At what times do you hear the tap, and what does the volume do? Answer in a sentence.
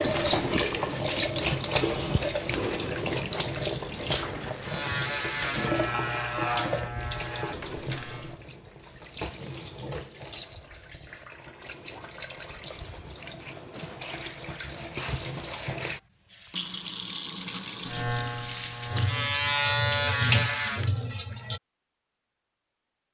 You can hear the tap from 0.0 to 21.6 s, getting quieter then louder.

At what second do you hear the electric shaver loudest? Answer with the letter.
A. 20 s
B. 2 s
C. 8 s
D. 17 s
A.